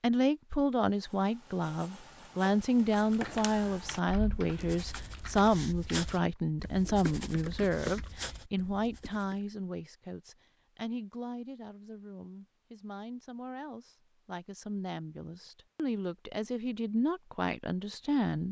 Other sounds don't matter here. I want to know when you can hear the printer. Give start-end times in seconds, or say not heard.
not heard.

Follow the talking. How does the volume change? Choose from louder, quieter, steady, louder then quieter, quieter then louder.
quieter then louder.